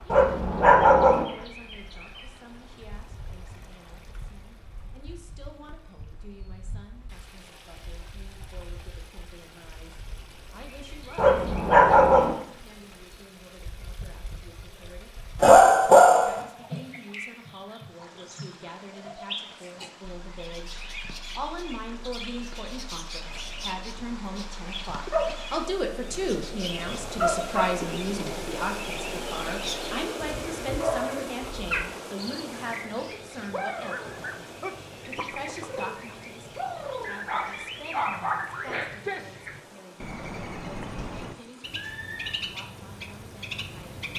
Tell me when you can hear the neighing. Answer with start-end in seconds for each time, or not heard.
41.8-42.4.